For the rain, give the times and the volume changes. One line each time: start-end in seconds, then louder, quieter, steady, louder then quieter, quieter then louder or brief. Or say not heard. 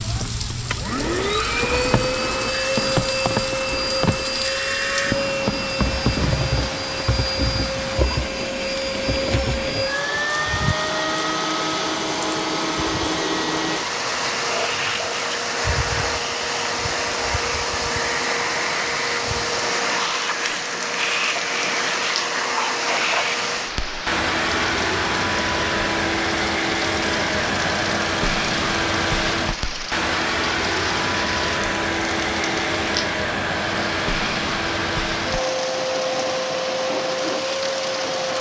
0.0-38.3 steady.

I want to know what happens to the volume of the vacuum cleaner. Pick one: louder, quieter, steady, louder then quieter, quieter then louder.
steady.